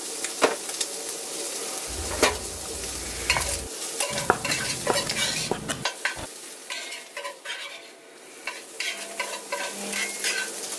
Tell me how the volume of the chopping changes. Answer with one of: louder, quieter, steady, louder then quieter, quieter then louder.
louder.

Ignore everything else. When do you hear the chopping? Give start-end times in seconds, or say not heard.
1.9-6.3.